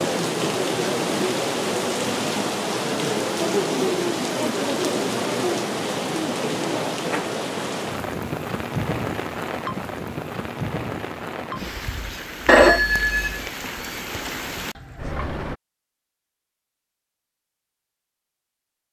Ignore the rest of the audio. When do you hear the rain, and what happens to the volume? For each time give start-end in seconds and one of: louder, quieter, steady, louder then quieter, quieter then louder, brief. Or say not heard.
0.0-15.6 quieter.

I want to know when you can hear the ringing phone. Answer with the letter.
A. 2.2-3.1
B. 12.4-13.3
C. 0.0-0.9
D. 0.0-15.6
B.